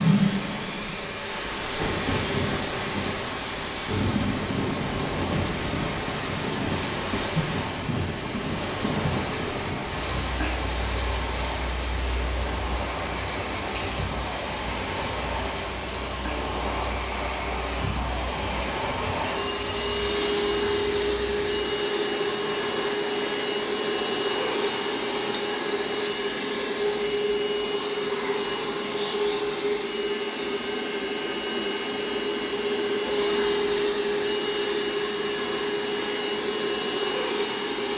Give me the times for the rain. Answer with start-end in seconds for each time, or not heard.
0.0-26.1.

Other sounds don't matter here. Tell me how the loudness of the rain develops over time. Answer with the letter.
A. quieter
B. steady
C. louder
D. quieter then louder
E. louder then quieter
A.